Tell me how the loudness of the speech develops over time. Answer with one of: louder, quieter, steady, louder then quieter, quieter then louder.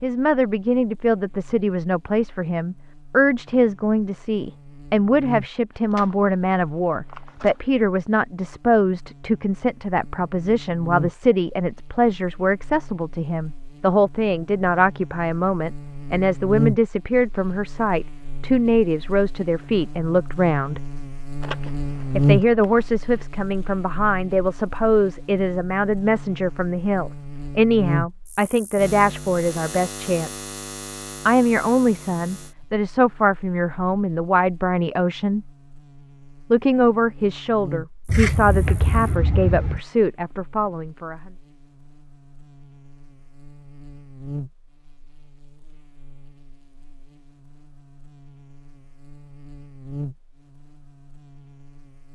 steady.